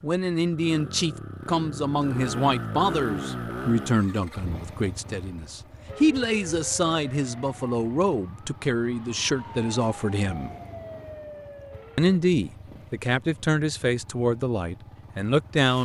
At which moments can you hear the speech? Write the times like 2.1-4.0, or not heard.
0.0-10.6, 11.9-15.8.